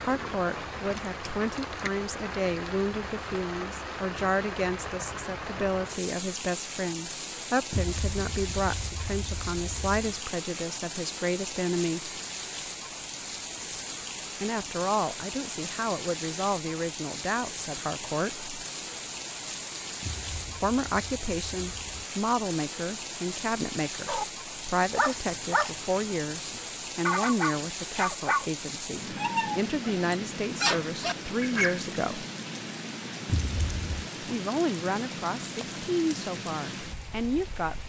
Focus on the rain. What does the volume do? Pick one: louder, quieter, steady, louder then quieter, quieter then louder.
steady.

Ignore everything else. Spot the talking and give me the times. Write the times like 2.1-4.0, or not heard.
0.0-12.2, 14.4-18.5, 20.6-32.2, 34.2-37.8.